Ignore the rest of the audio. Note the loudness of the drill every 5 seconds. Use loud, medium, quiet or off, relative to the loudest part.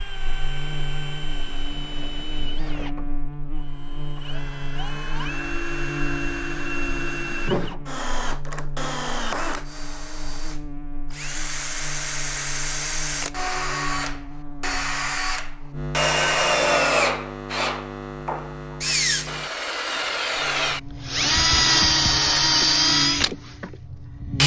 quiet, medium, medium, loud, loud.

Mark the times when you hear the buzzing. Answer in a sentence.
You can hear the buzzing from 0.0 to 24.4 s.